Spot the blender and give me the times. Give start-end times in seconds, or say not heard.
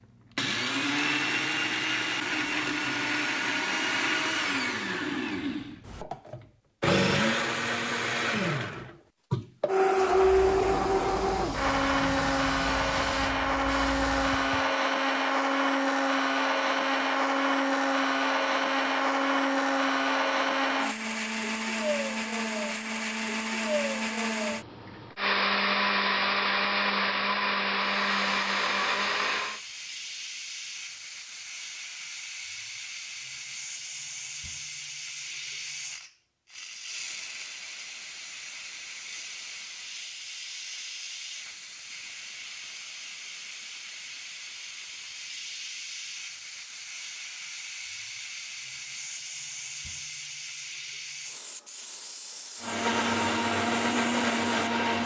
0.3-29.6, 52.6-55.0.